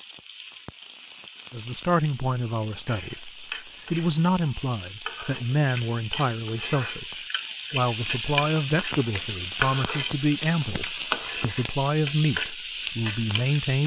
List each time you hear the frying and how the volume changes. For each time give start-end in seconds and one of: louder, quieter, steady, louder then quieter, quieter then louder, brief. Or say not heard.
0.0-13.8 louder.